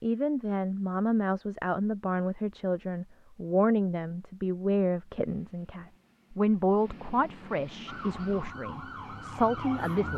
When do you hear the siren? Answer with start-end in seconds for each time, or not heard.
7.8-10.1.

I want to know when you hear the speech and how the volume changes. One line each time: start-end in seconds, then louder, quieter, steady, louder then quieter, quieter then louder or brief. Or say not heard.
0.0-10.1 steady.